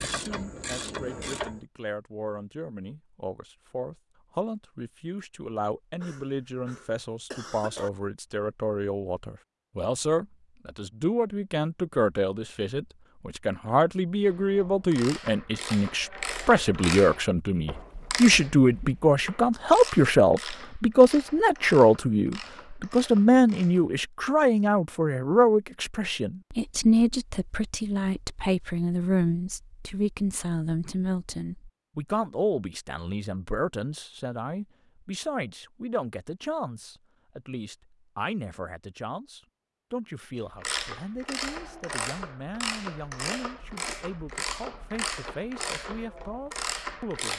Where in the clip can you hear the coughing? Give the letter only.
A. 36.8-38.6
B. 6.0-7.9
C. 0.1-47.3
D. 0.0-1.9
B.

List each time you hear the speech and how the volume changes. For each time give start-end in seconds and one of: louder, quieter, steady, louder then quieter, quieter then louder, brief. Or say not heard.
0.1-47.3 louder then quieter.